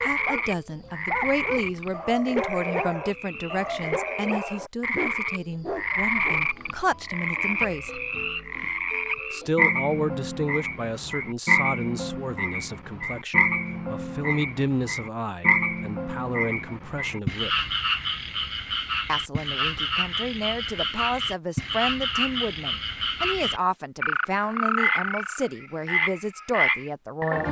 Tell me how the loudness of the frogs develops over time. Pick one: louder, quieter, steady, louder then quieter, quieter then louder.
louder.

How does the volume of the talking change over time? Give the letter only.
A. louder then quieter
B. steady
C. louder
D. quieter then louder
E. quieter
B.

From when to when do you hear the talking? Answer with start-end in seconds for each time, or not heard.
0.0-8.0, 9.3-17.6, 19.1-27.4.